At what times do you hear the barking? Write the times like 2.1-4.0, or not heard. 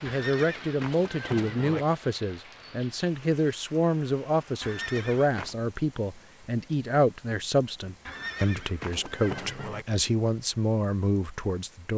not heard.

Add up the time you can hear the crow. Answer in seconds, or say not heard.
not heard.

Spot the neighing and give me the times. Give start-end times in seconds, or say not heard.
0.1-1.9, 4.6-5.5, 8.1-9.8.